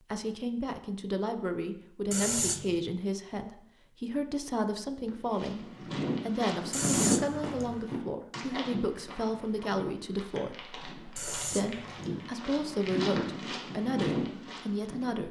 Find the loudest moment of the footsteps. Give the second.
7 s.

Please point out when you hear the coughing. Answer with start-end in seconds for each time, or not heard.
2.1-2.9, 6.7-7.8, 11.2-12.2.